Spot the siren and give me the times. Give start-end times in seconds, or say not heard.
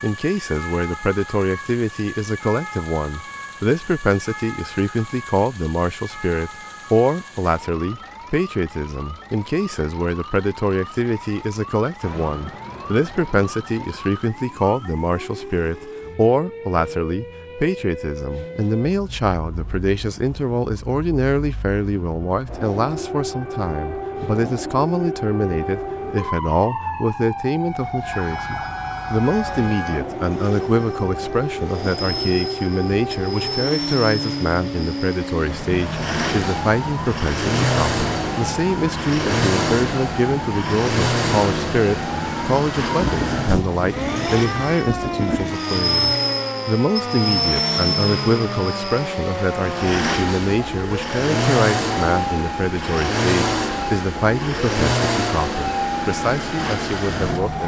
0.0-57.6.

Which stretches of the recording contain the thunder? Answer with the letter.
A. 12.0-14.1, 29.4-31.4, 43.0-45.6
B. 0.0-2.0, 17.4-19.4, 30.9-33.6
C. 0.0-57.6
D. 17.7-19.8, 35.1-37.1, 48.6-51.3
A.